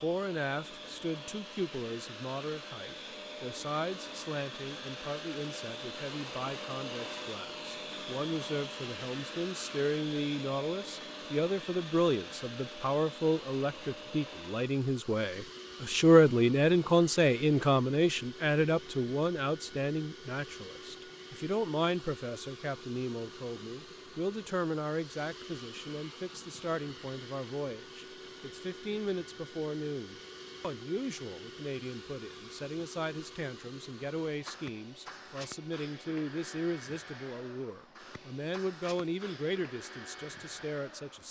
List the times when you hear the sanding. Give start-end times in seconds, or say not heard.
not heard.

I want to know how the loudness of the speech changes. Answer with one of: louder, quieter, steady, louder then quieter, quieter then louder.
louder then quieter.